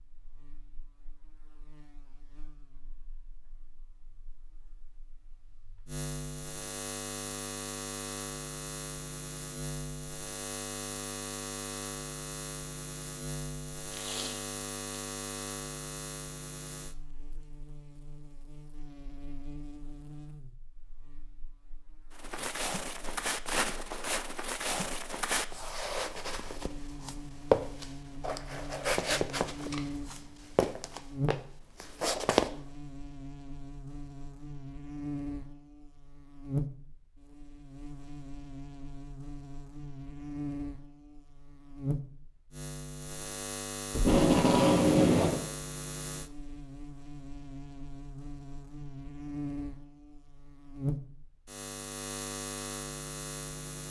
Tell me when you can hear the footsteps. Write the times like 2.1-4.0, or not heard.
22.1-32.5.